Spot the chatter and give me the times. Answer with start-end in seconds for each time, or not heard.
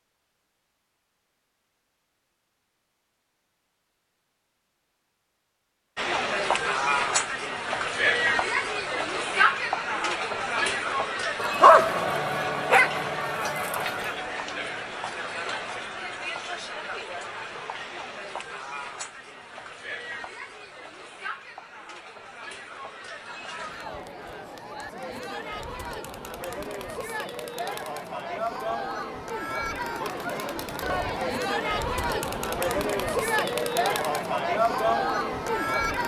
6.0-36.0.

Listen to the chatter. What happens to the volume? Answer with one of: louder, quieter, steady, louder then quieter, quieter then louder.
quieter then louder.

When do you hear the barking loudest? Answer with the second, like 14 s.
12 s.